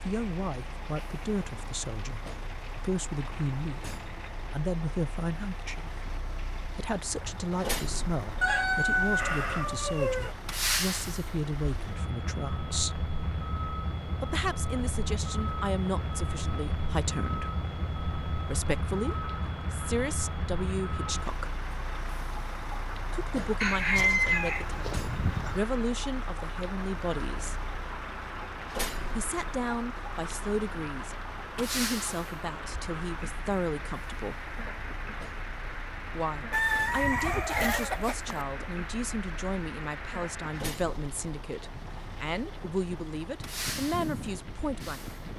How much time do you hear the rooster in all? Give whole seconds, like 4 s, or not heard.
6 s.